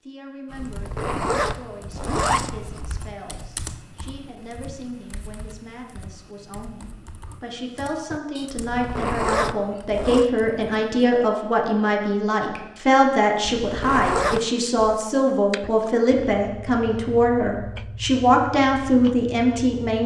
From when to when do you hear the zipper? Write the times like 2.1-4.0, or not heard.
0.6-3.1, 8.6-10.2, 13.4-15.0.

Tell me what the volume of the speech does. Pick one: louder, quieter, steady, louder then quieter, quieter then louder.
louder.